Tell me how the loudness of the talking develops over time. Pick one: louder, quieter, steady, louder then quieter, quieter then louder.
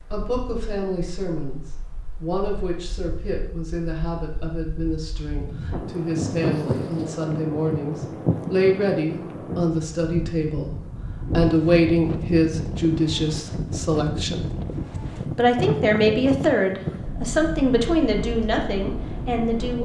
louder.